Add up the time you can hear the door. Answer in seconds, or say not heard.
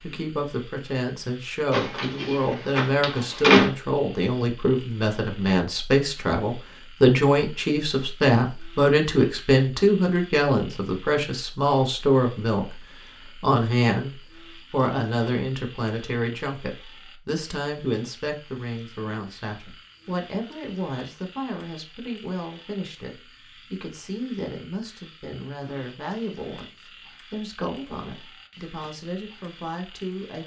2 s.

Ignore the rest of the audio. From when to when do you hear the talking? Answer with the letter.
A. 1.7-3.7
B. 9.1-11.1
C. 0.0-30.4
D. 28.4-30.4
C.